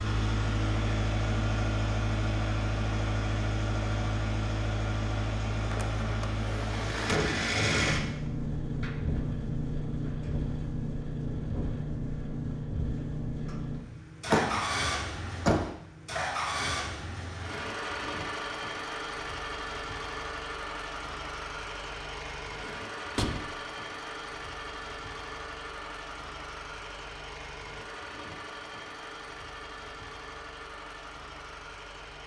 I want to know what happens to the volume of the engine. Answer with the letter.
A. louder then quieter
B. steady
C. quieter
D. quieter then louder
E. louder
C.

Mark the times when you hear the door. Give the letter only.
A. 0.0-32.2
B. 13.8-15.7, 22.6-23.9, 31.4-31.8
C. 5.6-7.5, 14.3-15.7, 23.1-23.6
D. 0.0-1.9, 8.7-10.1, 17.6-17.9
C.